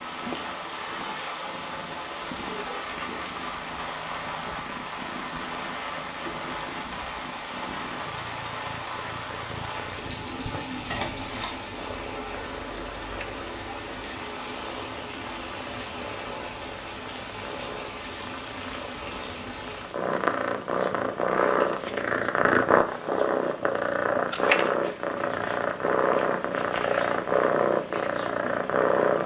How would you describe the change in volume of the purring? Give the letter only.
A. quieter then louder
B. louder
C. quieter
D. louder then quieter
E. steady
B.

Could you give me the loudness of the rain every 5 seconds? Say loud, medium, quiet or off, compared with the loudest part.
loud, loud, loud, loud, quiet, quiet.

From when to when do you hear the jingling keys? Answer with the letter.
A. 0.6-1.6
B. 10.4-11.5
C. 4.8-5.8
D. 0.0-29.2
B.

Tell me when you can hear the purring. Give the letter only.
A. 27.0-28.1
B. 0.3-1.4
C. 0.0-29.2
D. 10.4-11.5
C.